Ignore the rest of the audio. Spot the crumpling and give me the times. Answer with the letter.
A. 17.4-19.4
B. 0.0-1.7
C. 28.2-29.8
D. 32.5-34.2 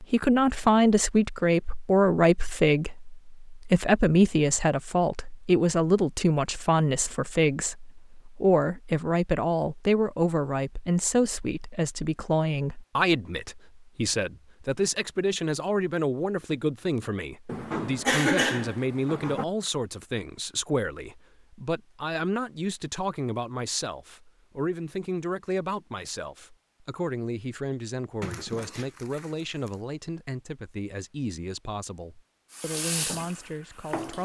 C.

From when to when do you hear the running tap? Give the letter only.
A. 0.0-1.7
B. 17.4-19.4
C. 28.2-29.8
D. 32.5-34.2
D.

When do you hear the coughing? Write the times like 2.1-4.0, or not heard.
17.4-19.4.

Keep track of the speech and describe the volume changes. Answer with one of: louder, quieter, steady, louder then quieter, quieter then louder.
quieter.